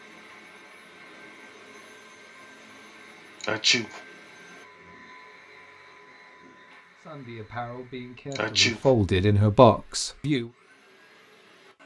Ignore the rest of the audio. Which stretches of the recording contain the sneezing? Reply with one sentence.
You can hear the sneezing from 3.4 to 4.0 s and from 8.3 to 8.9 s.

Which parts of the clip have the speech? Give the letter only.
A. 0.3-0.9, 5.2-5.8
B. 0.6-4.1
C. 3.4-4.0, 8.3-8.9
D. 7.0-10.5
D.